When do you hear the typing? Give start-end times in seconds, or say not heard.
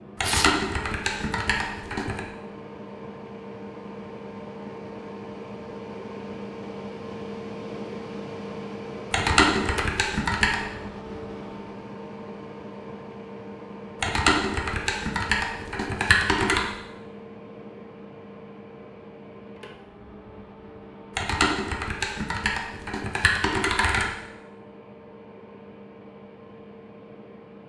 0.2-2.2, 9.1-10.6, 14.0-16.6, 21.1-24.1.